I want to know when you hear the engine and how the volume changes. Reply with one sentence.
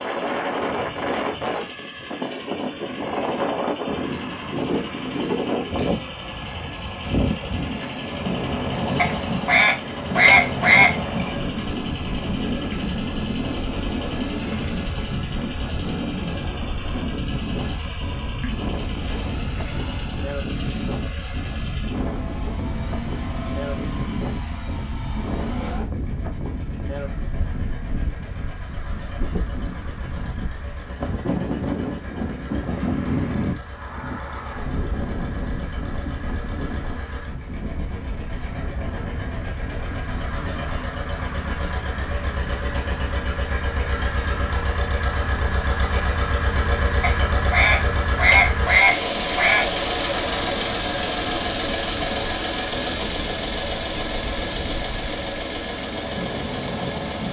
The engine can be heard from 0.0 to 57.2 s, getting louder.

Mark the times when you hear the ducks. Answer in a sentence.
You can hear the ducks from 8.9 to 10.9 s and from 47.0 to 49.6 s.